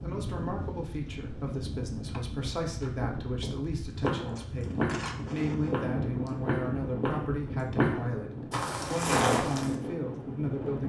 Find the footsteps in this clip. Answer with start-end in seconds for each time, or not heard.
4.0-9.8.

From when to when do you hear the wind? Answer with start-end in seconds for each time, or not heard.
0.0-10.8.